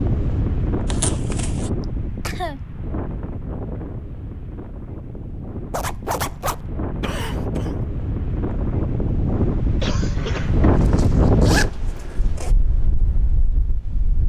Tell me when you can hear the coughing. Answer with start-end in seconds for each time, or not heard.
1.8-2.6, 7.0-7.7, 9.8-10.7.